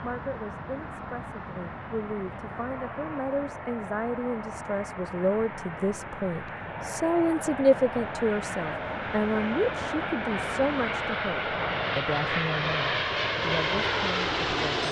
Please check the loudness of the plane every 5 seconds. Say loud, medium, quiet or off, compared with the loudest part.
medium, medium, loud.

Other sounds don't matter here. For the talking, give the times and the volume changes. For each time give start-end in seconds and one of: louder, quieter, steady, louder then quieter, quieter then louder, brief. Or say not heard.
0.0-14.8 louder then quieter.